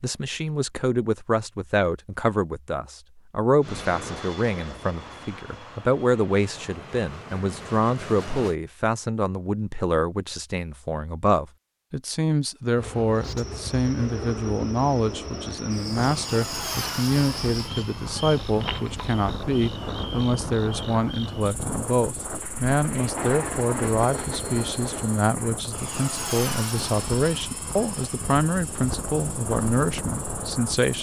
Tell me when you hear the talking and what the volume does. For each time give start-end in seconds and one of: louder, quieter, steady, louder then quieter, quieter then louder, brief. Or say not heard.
0.0-30.9 steady.